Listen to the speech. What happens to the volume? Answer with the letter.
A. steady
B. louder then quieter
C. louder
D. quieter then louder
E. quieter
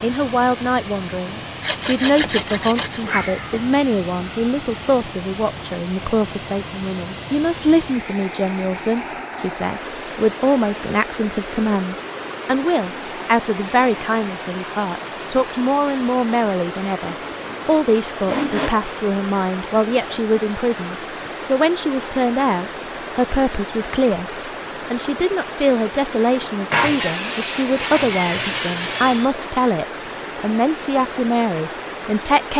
A.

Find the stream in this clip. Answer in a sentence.
You can hear the stream from 0.0 to 32.5 s.